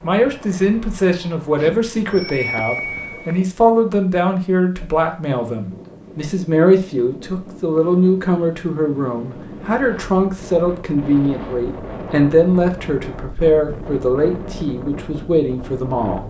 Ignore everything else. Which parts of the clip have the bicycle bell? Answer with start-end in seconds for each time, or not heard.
1.6-3.4.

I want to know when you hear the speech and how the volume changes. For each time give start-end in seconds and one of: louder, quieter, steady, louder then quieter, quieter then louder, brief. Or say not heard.
0.0-16.2 steady.